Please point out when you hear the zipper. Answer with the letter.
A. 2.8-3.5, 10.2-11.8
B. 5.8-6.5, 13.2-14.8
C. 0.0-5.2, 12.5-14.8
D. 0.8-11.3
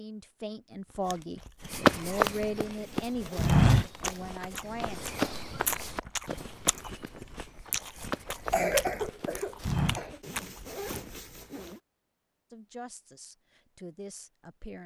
A.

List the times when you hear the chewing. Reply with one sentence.
You can hear the chewing from 0.8 to 11.3 s.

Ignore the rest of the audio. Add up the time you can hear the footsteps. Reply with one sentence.
You can hear the footsteps for 8 seconds altogether.